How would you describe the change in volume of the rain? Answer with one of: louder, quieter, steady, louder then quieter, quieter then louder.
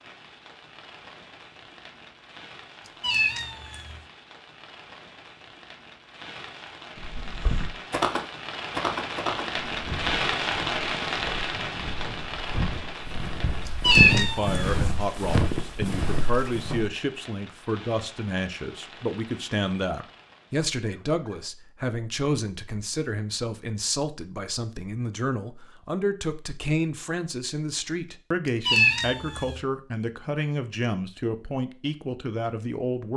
louder then quieter.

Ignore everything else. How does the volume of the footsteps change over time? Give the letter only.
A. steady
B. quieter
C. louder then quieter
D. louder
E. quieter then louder
E.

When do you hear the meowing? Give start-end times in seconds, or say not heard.
3.0-4.0, 13.7-14.8, 28.6-29.6.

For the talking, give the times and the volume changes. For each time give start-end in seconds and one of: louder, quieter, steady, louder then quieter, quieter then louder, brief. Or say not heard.
13.9-33.1 steady.